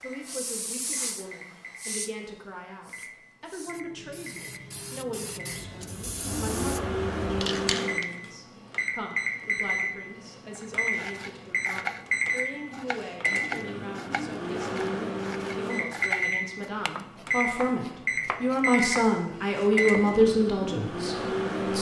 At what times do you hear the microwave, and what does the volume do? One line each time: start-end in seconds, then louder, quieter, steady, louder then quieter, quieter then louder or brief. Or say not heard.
0.0-21.7 louder.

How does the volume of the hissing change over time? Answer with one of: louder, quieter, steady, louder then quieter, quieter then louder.
quieter then louder.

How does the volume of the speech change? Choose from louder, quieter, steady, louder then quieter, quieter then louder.
louder.